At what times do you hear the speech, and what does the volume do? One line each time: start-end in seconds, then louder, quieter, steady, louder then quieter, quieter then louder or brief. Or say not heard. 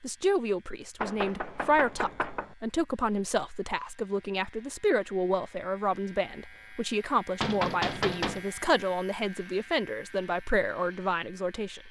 0.0-11.8 steady.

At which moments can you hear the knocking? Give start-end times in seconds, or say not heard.
1.0-2.5, 7.4-8.4.